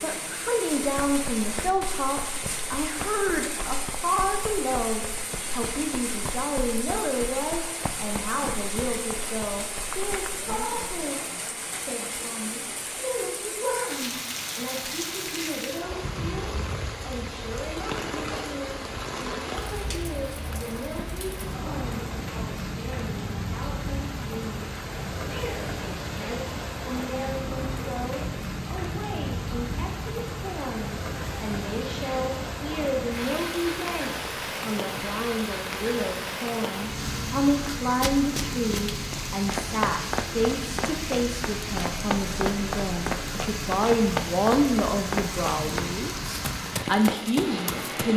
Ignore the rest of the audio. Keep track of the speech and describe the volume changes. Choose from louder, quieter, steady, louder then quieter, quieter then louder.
quieter then louder.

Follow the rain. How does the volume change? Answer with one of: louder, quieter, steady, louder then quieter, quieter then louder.
steady.